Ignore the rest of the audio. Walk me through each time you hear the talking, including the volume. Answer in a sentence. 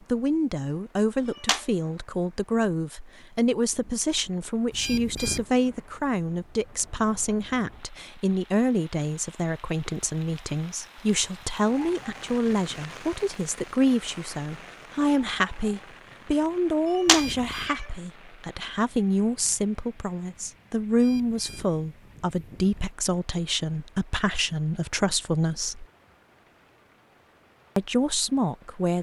You can hear the talking from 0.1 to 25.9 s, at a steady volume; and briefly from 27.8 to 28.9 s.